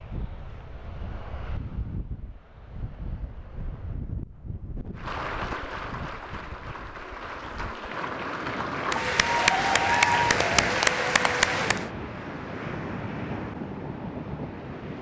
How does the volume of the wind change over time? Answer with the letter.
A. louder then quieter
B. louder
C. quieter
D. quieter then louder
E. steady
B.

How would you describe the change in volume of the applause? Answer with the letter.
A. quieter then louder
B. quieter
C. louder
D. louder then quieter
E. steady
C.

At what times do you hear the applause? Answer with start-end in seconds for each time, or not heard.
5.0-11.9.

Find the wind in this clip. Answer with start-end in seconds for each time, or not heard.
0.0-14.9.